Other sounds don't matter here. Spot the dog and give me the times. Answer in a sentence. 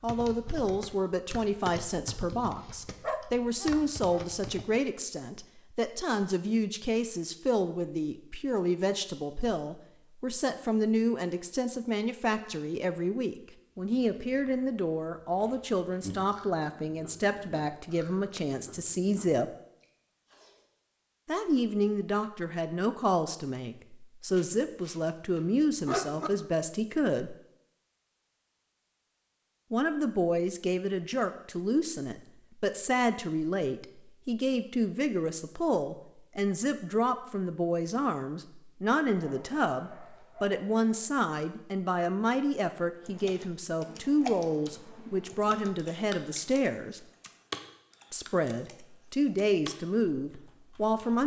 The dog can be heard from 3.0 to 4.2 s, from 24.3 to 26.3 s and from 39.0 to 41.1 s.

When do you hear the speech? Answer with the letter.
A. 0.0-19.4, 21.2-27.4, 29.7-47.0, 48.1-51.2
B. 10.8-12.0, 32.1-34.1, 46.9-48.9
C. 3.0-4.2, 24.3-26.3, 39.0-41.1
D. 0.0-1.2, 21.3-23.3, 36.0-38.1
A.